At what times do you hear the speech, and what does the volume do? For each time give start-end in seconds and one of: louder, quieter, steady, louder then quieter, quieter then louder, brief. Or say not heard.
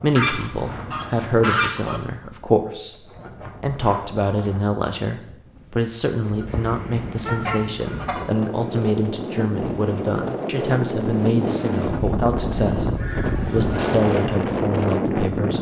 0.0-3.0 brief
3.6-15.5 steady.